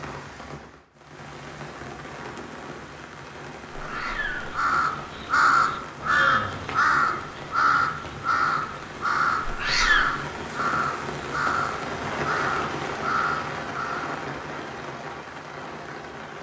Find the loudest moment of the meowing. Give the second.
10 s.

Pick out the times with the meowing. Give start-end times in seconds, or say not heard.
3.8-4.5, 9.4-10.2.